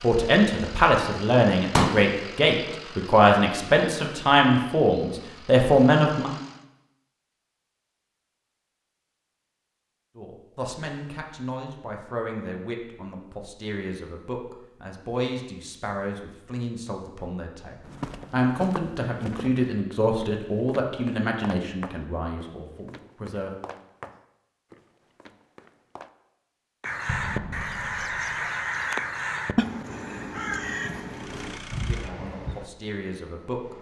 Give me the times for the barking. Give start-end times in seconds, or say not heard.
not heard.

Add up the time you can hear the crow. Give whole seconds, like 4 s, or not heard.
6 s.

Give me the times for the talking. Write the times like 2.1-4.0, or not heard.
0.0-6.3, 10.2-23.5, 31.9-33.7.